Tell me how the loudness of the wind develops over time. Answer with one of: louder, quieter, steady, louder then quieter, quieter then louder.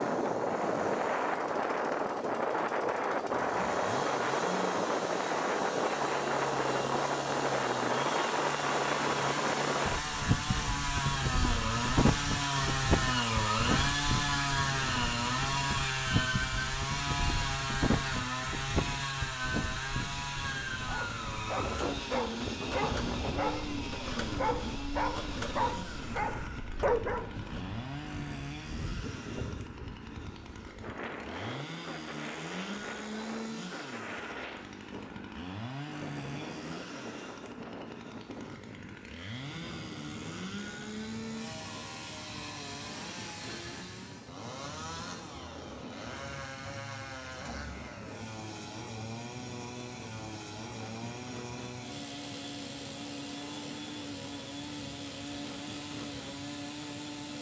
quieter.